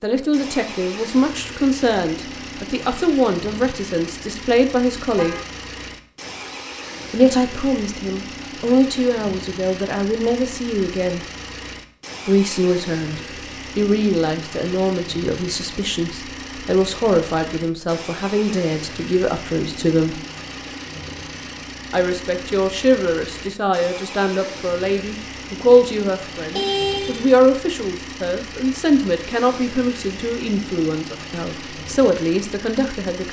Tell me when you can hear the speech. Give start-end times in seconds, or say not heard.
0.0-5.3, 7.1-11.2, 12.2-20.2, 21.9-33.2.